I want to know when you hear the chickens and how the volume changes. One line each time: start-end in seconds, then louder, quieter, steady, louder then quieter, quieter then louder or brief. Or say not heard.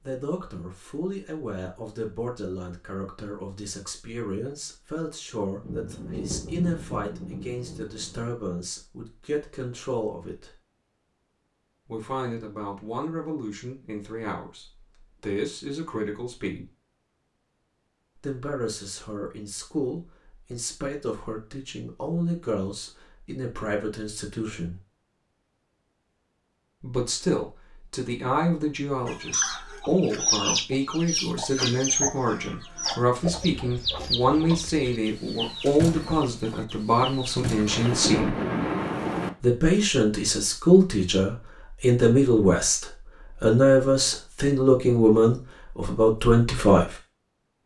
29.1-37.9 quieter.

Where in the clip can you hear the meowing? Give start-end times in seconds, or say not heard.
not heard.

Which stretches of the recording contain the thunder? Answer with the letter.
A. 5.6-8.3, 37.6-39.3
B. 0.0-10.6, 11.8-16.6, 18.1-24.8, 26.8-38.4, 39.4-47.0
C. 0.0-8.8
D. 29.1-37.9
A.